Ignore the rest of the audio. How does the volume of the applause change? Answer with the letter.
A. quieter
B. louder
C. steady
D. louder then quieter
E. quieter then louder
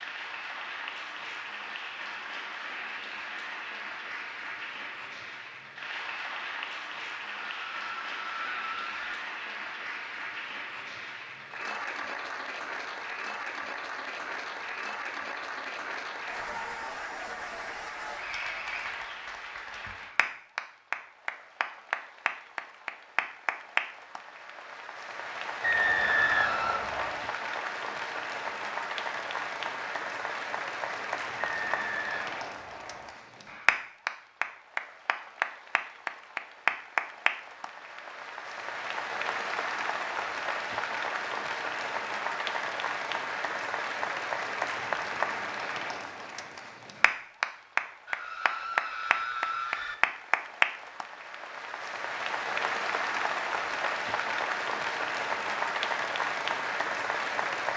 B.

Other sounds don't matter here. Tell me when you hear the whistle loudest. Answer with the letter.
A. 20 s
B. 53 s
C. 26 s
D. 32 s
C.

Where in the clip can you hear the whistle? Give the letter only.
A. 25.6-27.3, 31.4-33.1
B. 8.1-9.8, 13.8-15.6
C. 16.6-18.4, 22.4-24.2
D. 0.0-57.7
A.